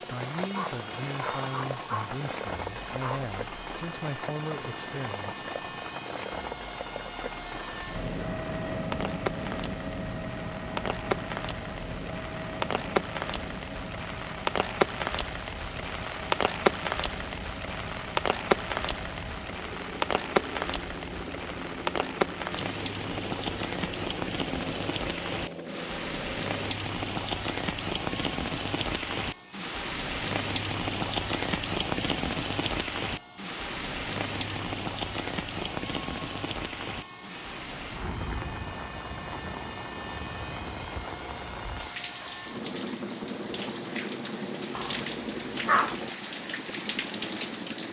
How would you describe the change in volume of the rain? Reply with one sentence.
The loudness of the rain goes up, then down.